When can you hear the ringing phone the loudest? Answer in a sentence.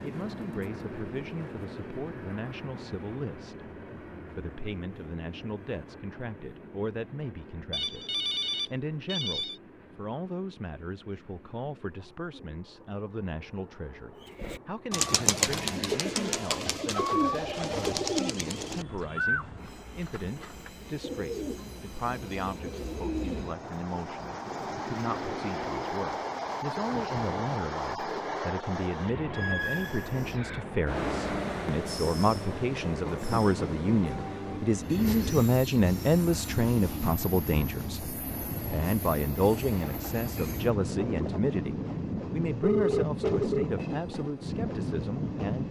The volume of the ringing phone peaks at 43 seconds.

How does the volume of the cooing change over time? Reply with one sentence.
The volume of the cooing goes down.